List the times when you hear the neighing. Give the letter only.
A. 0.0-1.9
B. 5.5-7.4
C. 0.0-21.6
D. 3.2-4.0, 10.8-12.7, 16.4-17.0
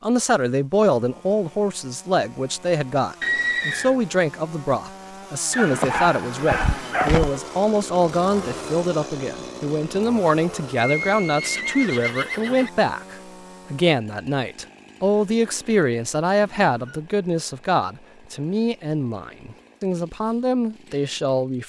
D.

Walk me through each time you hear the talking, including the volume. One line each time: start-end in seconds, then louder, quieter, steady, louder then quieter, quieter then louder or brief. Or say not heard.
0.0-21.6 steady.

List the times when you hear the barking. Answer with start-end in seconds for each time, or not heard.
5.5-7.4.